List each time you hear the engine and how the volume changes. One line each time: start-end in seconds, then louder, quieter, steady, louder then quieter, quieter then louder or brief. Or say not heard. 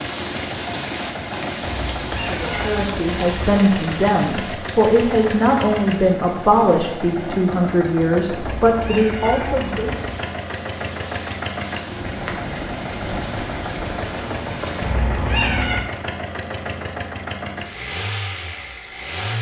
0.0-19.3 steady.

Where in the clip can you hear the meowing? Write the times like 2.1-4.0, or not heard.
1.6-3.6, 8.3-10.0, 14.8-15.8.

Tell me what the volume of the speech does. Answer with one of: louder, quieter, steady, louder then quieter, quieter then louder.
steady.